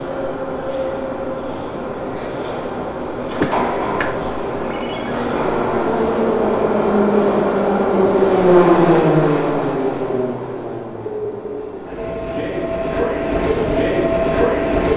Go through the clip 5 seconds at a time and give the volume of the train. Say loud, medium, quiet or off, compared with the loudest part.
medium, loud, medium.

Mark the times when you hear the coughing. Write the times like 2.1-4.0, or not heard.
3.4-4.2.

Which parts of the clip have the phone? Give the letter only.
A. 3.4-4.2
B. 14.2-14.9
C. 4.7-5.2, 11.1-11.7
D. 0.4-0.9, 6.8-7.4
C.